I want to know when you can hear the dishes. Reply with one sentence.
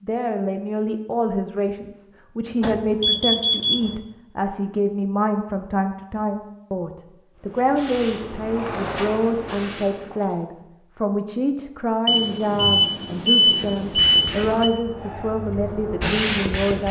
You can't hear the dishes here.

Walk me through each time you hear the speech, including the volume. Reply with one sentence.
You can hear the speech from 0.0 to 16.8 s, at a steady volume.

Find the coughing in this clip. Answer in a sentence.
The coughing can't be heard in this clip.